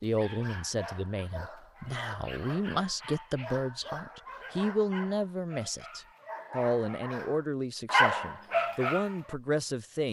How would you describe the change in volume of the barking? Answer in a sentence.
The volume of the barking goes up.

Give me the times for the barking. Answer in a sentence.
The barking can be heard from 0.0 to 9.3 s.